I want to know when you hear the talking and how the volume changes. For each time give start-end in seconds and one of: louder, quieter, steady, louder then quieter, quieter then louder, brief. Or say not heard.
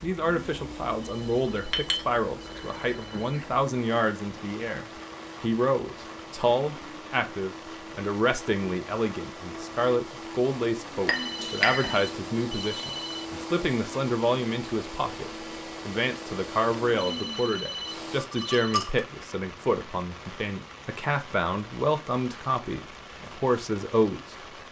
0.0-24.6 steady.